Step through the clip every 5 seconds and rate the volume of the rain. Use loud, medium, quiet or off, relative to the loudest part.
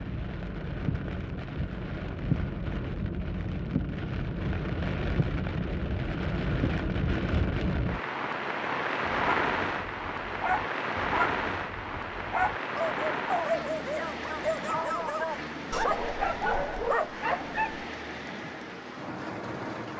loud, loud, loud, medium.